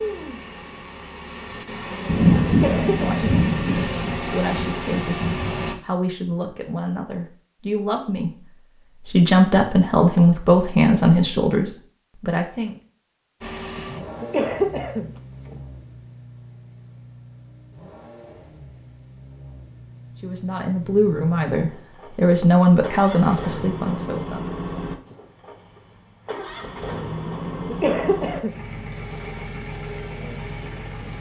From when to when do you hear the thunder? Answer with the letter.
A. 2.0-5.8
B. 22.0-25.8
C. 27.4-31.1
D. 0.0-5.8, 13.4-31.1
A.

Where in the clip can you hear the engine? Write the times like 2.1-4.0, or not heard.
0.0-5.8, 13.4-31.1.